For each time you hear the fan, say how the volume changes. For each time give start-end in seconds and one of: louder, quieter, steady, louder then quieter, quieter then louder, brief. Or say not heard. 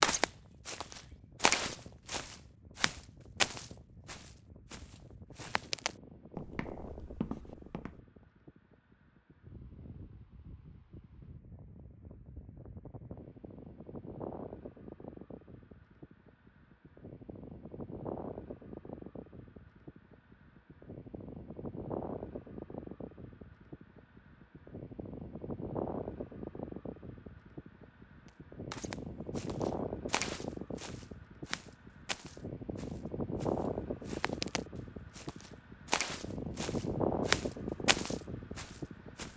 0.1-39.3 louder.